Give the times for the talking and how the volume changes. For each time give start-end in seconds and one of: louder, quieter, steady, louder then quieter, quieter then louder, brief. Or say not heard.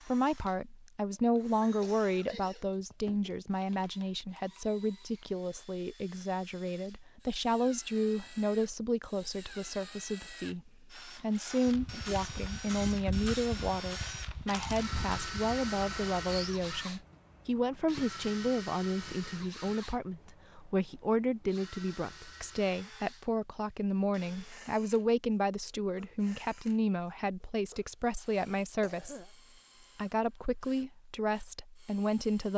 0.1-29.2 steady
29.9-32.5 brief.